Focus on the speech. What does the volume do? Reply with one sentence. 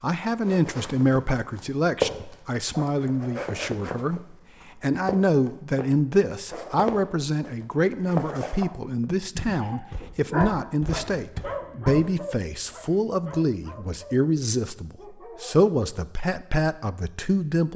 The volume of the speech stays about the same.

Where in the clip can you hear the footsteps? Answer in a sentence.
The footsteps can be heard from 0.4 to 12.2 s.